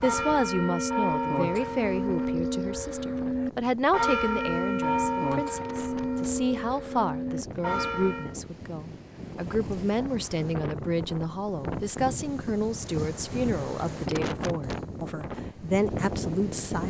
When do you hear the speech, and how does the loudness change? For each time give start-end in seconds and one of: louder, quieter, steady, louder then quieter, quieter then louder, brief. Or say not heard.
0.0-16.8 steady.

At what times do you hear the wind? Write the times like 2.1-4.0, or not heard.
0.0-16.8.